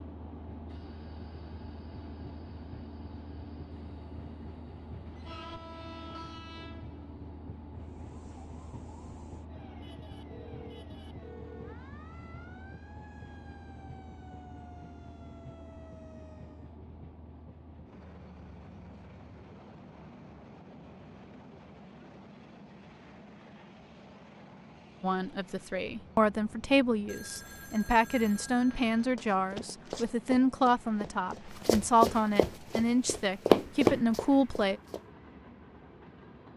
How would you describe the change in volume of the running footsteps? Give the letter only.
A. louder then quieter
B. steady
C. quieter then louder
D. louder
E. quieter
C.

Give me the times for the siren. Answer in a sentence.
The siren can be heard from 7.8 to 16.8 s.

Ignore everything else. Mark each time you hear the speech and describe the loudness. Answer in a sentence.
You can hear the speech from 25.0 to 34.8 s, at a steady volume.